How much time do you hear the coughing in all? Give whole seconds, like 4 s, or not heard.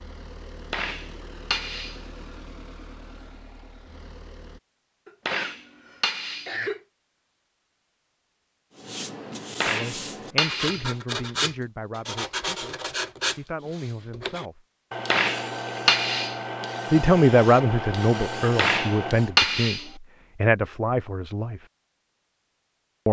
2 s.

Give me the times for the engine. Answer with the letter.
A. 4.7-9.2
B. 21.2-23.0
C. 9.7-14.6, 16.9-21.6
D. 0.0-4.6
D.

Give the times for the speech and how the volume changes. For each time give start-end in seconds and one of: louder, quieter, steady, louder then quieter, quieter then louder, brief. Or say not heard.
9.7-14.6 quieter then louder
16.9-21.6 quieter then louder.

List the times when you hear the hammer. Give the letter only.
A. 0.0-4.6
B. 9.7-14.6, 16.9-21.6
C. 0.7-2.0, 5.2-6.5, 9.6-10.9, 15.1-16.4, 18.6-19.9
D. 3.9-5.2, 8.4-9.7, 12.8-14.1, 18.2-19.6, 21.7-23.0
C.